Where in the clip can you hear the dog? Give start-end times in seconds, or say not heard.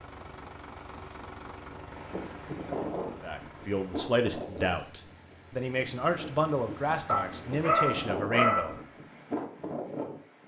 7.0-8.8.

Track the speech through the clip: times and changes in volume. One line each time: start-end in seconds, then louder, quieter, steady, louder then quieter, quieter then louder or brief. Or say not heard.
3.2-8.8 steady.